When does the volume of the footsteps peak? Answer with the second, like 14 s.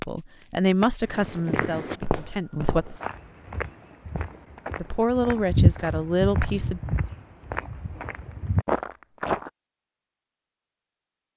6 s.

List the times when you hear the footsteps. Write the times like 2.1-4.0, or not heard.
1.1-9.5.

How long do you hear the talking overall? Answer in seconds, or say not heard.
5 s.